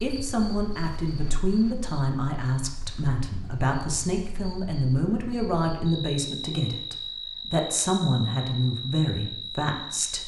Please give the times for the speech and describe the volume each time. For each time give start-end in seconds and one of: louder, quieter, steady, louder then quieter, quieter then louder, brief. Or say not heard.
0.0-10.2 steady.